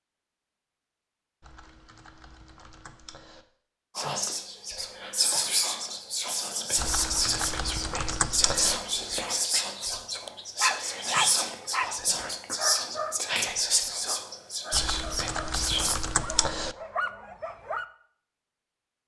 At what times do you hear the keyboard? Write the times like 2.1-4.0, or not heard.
1.4-3.5, 6.8-8.8, 14.7-16.8.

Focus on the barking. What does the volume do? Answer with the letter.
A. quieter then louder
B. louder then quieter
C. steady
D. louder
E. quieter
A.